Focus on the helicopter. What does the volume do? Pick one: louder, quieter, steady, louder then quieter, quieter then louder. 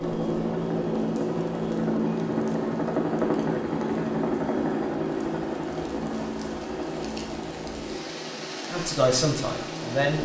quieter.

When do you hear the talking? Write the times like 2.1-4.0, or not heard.
8.7-10.1.